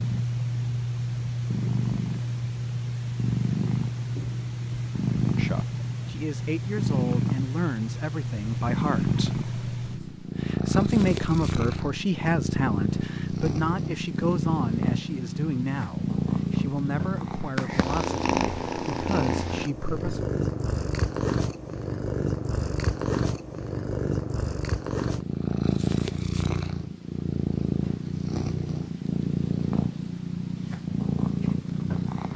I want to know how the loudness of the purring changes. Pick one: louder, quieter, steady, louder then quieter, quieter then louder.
steady.